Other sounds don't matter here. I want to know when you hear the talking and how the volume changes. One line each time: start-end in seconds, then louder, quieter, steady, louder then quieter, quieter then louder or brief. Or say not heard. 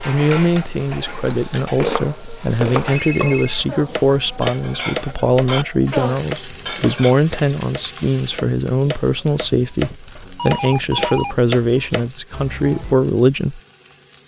0.1-13.6 steady.